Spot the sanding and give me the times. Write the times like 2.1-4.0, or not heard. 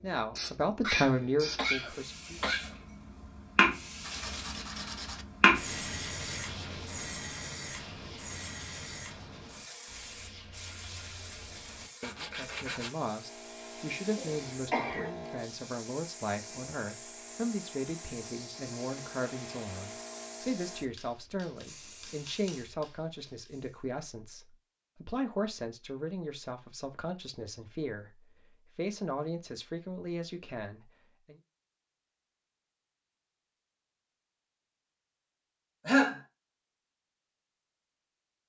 4.0-12.9.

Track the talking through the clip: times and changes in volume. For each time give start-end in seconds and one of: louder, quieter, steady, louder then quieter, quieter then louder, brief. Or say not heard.
0.0-2.4 brief
12.2-31.4 steady.